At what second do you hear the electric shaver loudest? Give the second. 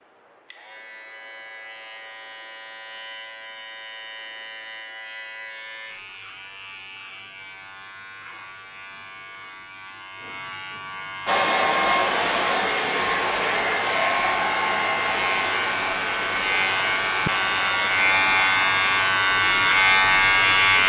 20 s.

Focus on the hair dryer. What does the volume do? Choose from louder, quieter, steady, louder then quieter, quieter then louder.
quieter.